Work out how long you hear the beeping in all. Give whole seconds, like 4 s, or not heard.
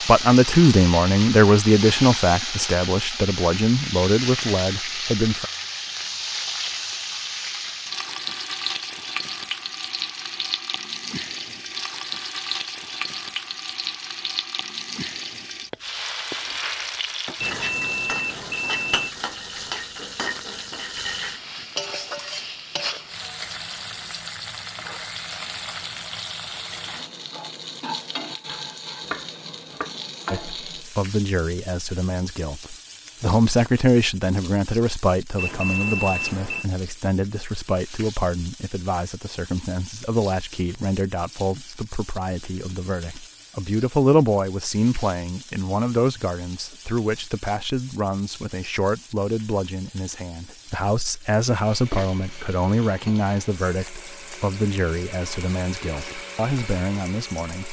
3 s.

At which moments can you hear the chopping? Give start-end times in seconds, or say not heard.
28.4-29.9.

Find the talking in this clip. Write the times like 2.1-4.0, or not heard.
0.0-5.5, 30.3-57.6.